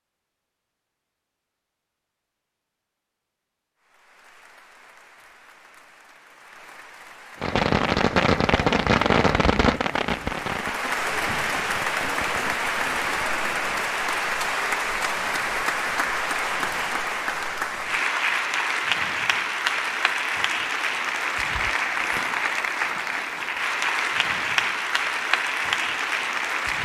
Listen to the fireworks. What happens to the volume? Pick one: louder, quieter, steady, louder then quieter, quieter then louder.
quieter.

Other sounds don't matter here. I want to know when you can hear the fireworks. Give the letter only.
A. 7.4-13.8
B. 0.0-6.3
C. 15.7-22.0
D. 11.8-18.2
A.